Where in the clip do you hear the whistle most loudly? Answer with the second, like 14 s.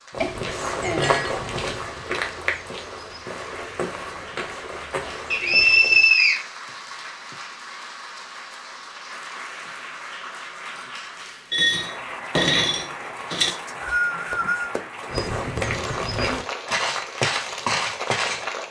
6 s.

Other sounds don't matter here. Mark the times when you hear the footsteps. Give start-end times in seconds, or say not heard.
0.1-6.1, 15.1-18.4.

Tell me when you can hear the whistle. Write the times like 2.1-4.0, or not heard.
5.3-6.4, 13.4-14.8.